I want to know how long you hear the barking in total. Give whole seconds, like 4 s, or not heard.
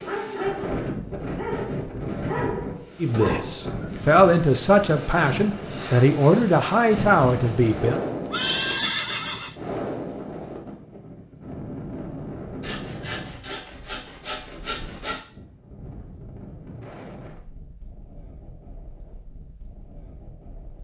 4 s.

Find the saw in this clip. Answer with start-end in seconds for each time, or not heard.
12.6-15.2.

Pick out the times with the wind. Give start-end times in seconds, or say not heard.
0.0-20.7.